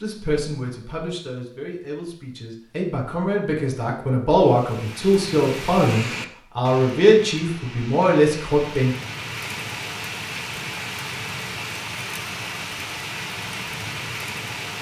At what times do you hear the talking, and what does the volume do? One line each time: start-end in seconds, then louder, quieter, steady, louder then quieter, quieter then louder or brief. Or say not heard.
0.0-8.9 louder.